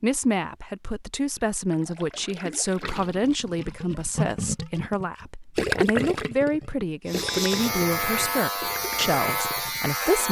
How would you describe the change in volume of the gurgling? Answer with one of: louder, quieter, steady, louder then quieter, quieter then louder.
louder then quieter.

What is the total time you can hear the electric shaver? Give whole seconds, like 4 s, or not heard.
3 s.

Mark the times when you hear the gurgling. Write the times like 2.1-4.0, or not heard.
1.4-9.9.